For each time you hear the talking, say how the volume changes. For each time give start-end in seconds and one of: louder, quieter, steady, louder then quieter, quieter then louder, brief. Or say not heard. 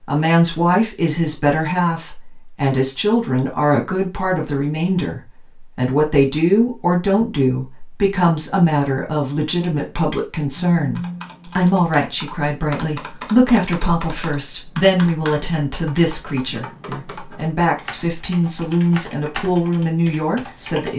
0.1-20.9 steady.